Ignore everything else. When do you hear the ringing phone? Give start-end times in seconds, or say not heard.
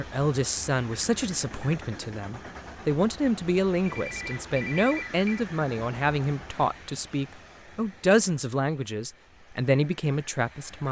3.9-5.5.